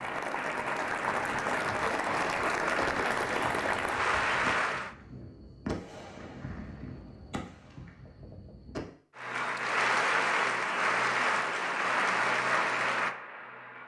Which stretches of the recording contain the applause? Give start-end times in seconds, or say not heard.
0.0-5.0, 9.2-13.8.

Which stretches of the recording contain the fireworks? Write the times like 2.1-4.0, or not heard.
3.2-8.8.